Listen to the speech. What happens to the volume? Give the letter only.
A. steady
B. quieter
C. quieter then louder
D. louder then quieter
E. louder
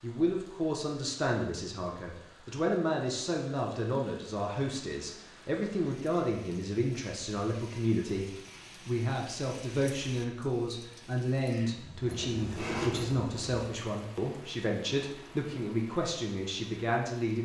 A.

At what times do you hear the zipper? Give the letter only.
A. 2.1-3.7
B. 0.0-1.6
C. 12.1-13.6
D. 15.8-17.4
C.